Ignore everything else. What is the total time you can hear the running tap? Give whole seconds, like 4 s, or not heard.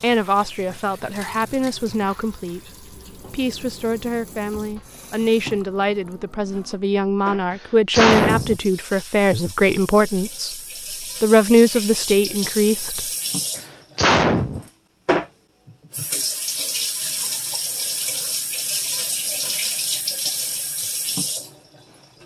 22 s.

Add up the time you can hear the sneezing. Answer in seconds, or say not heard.
2 s.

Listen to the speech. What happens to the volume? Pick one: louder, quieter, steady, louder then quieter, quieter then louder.
louder.